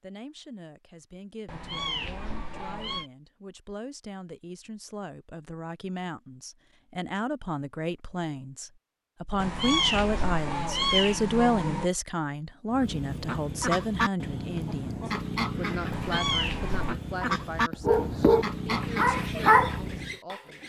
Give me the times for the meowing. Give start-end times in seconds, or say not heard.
1.4-3.1, 9.4-11.9, 15.9-16.9.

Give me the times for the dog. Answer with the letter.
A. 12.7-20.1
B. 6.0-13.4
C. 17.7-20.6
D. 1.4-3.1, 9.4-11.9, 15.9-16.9
C.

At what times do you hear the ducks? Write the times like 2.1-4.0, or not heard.
12.7-20.1.